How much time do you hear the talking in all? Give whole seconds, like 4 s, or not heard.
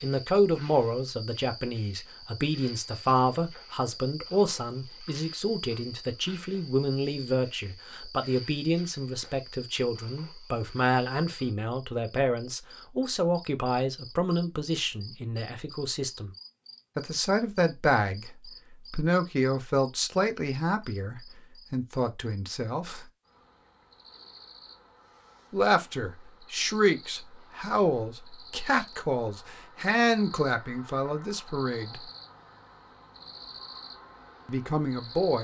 30 s.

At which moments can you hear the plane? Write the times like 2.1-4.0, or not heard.
not heard.